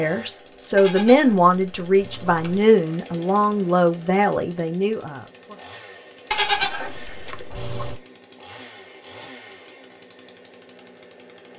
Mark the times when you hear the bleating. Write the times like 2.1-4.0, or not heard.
0.8-2.6, 6.3-8.0.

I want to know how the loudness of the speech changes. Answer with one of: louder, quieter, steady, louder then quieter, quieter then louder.
quieter.